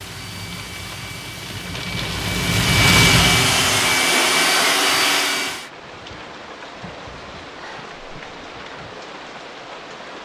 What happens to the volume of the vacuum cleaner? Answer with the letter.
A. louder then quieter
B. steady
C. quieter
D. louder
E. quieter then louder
D.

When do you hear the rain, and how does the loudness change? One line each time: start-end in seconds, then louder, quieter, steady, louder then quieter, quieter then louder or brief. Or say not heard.
0.0-10.2 louder then quieter.